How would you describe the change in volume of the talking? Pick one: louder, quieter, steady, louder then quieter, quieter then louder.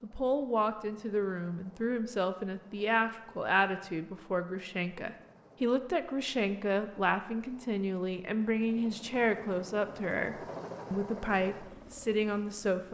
steady.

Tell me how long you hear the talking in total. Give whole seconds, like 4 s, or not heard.
13 s.